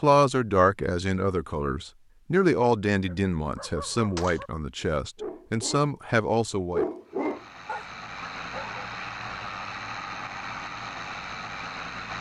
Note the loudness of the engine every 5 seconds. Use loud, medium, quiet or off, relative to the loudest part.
off, loud, loud.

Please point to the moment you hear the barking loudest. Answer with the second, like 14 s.
7 s.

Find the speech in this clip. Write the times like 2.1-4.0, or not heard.
0.0-6.8.